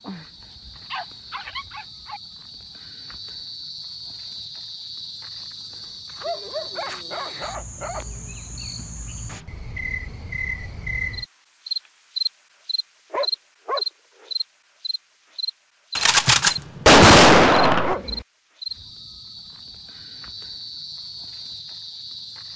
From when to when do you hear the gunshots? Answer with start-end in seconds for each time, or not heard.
15.9-17.9.